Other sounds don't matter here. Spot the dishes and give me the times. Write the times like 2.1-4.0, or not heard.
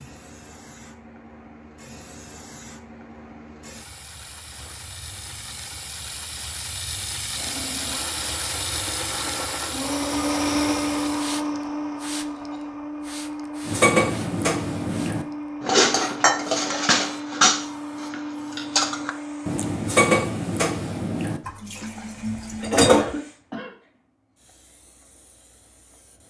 13.7-23.1.